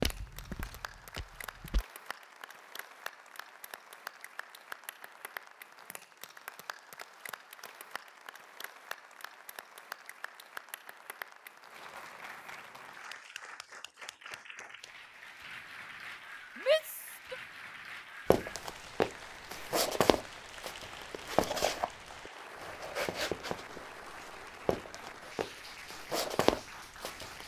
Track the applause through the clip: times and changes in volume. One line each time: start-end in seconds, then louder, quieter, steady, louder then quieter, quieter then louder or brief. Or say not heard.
0.0-27.4 steady.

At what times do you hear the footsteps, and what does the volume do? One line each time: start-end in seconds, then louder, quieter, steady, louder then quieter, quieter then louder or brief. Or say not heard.
0.0-1.9 brief
18.3-27.4 quieter then louder.